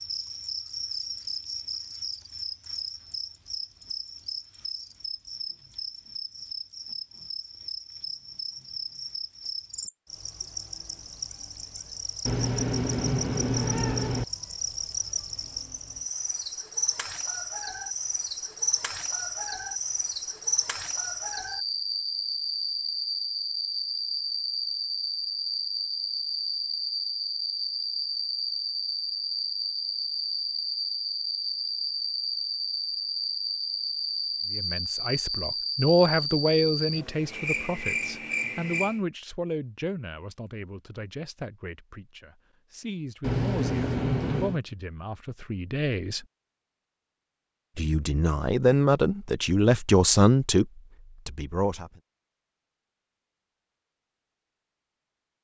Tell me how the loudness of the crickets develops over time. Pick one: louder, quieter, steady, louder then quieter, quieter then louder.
louder.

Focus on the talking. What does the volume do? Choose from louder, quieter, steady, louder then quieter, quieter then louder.
quieter then louder.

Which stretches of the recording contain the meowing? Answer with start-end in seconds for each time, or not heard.
12.2-14.2, 43.2-44.6.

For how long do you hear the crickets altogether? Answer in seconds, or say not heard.
39 s.